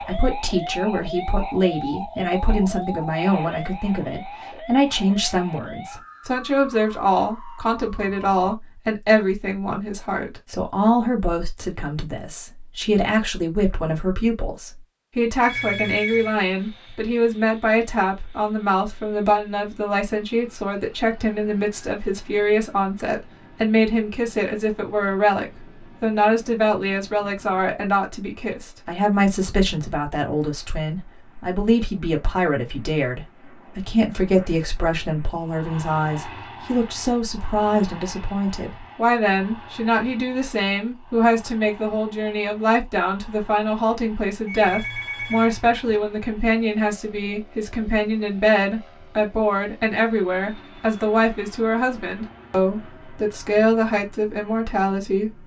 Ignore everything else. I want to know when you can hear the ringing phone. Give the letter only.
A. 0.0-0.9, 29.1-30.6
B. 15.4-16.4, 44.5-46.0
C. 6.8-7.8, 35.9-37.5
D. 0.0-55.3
B.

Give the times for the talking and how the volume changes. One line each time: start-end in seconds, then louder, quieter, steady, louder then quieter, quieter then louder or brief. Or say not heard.
0.0-55.3 steady.